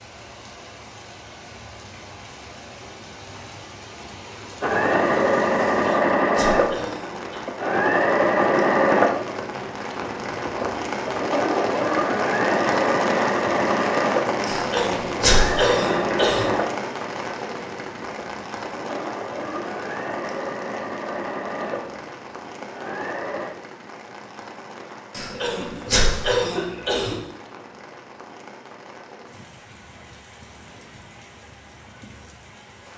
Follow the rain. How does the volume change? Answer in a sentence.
The volume of the rain goes up, then down.